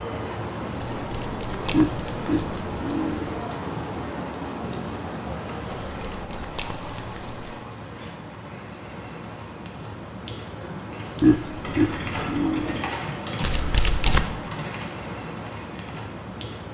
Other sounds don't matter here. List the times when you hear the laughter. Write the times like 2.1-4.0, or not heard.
1.7-3.4, 11.2-12.8.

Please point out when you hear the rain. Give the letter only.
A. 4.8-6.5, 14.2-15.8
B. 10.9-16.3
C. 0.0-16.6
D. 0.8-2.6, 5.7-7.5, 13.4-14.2
C.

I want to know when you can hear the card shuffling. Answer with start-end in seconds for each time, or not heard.
0.8-2.6, 5.7-7.5, 13.4-14.2.